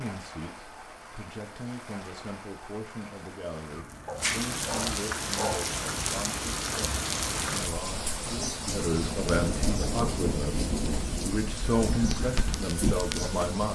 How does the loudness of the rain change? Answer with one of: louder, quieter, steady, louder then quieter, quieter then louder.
louder.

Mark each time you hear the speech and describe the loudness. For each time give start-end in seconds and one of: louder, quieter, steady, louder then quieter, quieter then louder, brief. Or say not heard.
0.0-13.7 louder.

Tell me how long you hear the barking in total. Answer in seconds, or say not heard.
2 s.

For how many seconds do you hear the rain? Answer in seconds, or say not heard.
14 s.